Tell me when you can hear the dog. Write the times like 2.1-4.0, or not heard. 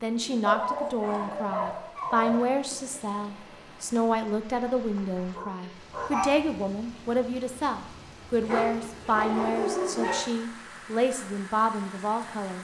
0.5-2.5, 5.2-6.4, 8.4-10.2.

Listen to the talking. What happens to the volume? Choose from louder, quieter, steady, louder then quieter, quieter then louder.
steady.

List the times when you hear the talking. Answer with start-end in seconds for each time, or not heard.
0.0-12.6.